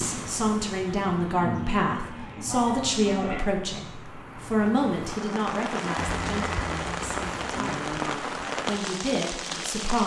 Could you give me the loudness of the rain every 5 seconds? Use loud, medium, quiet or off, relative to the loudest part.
medium, loud.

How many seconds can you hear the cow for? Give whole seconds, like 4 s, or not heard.
5 s.